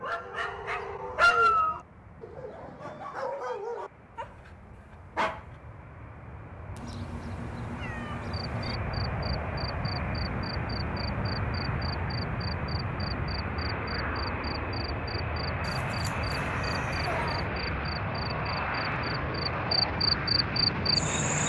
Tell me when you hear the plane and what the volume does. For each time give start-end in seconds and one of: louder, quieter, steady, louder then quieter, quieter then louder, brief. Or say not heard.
0.0-21.4 louder.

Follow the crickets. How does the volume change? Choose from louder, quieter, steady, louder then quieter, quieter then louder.
louder.